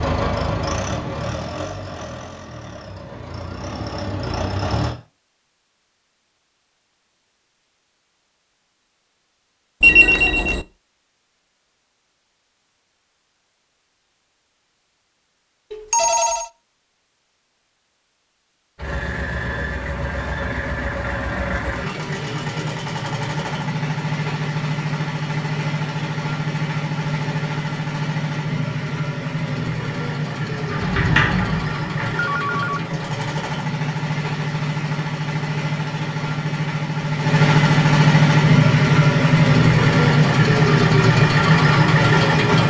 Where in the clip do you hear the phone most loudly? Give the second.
10 s.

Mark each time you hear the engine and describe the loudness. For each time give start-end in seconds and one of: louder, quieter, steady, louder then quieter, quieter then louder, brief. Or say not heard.
0.0-5.0 quieter then louder
18.8-42.6 louder.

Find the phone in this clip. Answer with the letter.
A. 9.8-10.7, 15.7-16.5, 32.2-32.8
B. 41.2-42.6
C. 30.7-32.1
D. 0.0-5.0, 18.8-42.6
A.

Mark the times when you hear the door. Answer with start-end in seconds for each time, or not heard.
30.7-32.1.